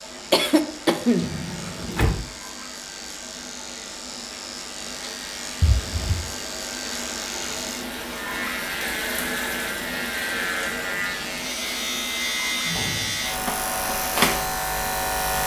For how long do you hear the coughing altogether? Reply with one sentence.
You can hear the coughing for 2 seconds altogether.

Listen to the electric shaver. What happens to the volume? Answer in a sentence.
The volume of the electric shaver goes up.